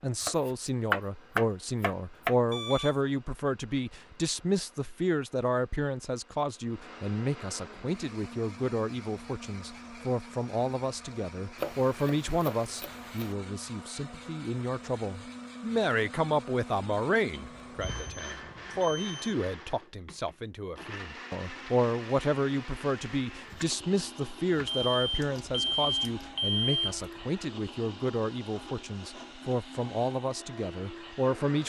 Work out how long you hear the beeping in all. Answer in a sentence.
You can hear the beeping for 5 seconds altogether.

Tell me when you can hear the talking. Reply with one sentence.
You can hear the talking from 0.0 to 31.6 s.